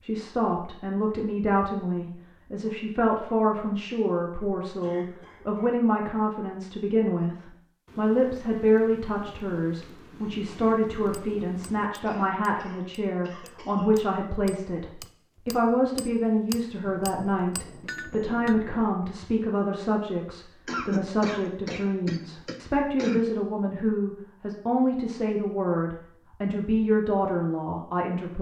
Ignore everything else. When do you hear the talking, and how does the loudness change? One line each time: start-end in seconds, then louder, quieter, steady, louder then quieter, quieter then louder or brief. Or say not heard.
0.0-28.3 steady.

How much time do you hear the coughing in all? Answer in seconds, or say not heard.
5 s.